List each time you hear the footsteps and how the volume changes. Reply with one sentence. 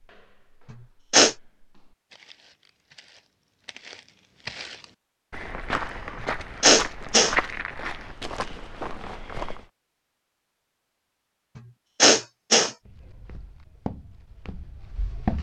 You can hear the footsteps from 0.0 to 9.7 s, getting louder then quieter; and briefly from 12.8 to 15.3 s.